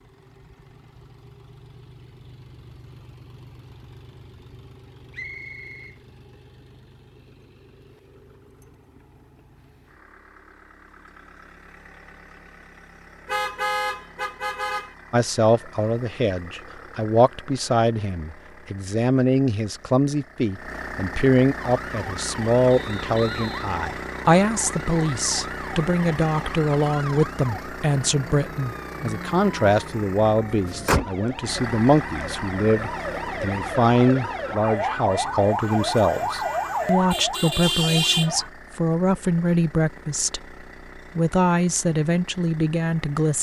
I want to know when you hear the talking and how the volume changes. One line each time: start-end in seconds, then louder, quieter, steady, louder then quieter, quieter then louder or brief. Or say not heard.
15.1-40.5 steady
41.1-43.3 brief.